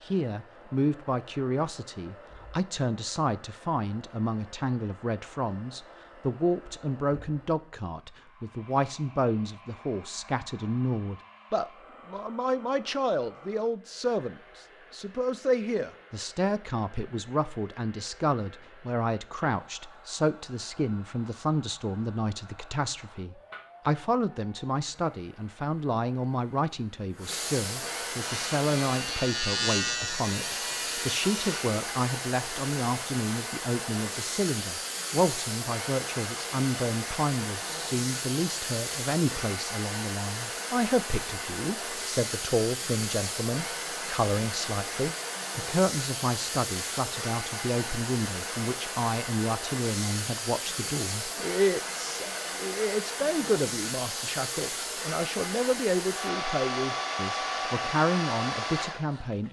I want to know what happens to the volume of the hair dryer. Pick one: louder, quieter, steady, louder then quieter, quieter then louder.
louder.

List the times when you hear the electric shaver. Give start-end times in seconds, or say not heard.
28.2-31.7.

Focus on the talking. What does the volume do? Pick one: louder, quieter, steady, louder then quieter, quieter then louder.
steady.